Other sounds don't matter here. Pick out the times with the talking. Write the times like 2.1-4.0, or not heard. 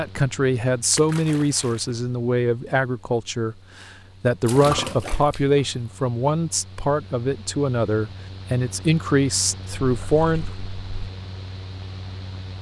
0.0-10.4.